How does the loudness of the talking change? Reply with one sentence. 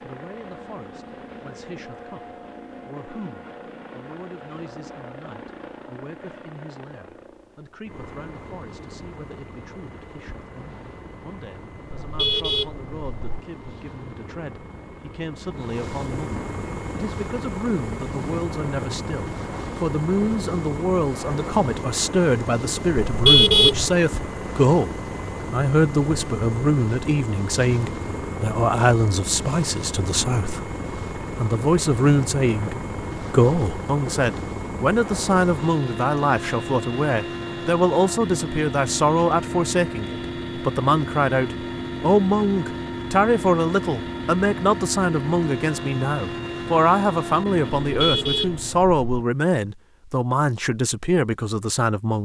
The loudness of the talking goes up.